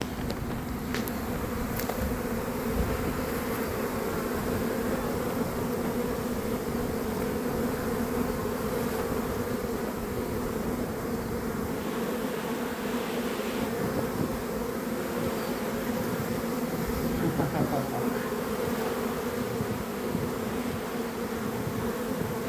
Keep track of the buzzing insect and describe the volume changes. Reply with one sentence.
The volume of the buzzing insect stays about the same.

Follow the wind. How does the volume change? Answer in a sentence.
The volume of the wind stays about the same.